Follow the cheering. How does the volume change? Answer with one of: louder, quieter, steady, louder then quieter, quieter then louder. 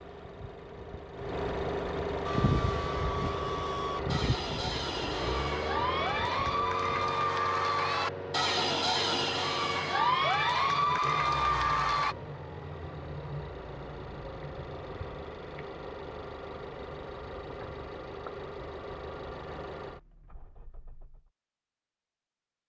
louder.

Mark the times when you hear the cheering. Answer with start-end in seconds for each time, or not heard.
2.2-12.2.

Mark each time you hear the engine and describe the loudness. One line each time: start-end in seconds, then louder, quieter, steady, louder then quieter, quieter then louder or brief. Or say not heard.
0.0-21.3 quieter.